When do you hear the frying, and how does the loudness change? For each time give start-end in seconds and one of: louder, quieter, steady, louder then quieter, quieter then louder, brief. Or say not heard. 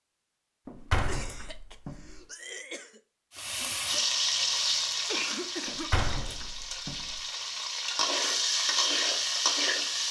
3.3-10.0 quieter then louder.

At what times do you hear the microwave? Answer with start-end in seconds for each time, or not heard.
not heard.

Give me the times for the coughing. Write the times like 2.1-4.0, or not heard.
1.0-3.0, 5.0-6.0.